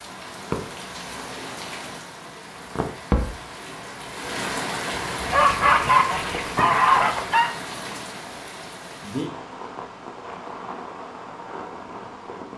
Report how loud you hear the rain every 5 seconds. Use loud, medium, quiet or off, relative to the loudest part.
loud, loud, medium.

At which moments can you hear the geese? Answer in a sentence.
The geese can be heard from 5.3 to 7.5 s.